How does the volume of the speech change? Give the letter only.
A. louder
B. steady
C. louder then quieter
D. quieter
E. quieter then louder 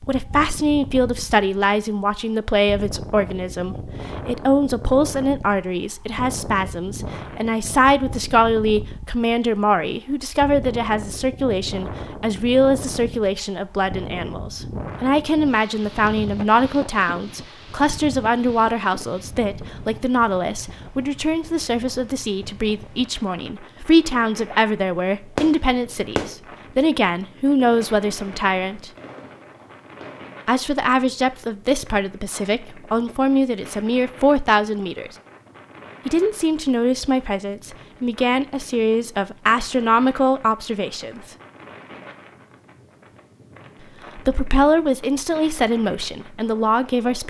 B.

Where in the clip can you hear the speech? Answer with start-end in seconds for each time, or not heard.
0.1-28.9, 30.4-35.1, 36.0-41.2, 44.1-47.2.